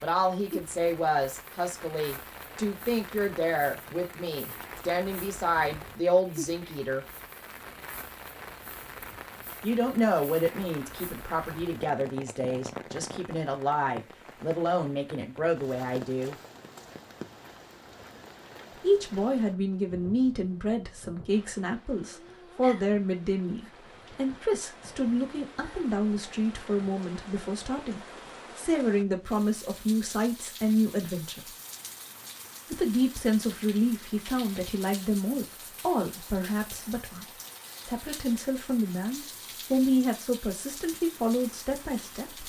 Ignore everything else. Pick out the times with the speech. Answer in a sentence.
You can hear the speech from 0.0 to 7.0 s, from 9.6 to 16.4 s, from 18.8 to 31.5 s, from 32.7 to 37.2 s and from 37.9 to 42.4 s.